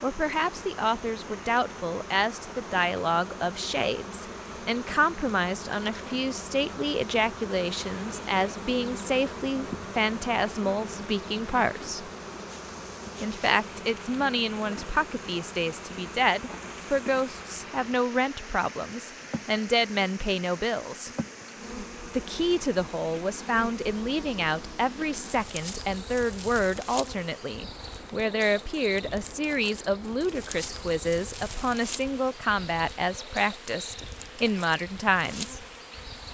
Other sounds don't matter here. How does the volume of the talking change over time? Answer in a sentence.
The loudness of the talking stays about the same.